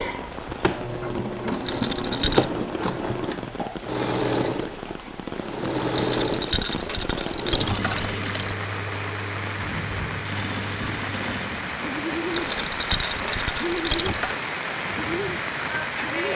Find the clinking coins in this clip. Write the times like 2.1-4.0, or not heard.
1.6-2.5, 5.9-8.6, 12.3-14.4.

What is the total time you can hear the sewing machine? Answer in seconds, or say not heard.
16 s.